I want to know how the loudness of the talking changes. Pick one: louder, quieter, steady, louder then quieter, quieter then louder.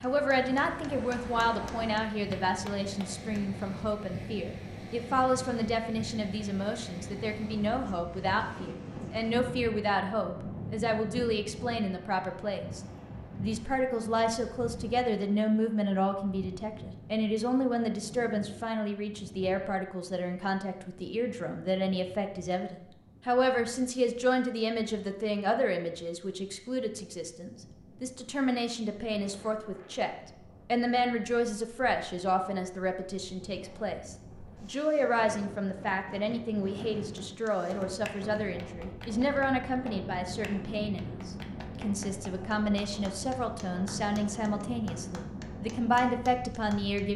steady.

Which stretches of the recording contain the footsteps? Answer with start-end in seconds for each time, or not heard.
not heard.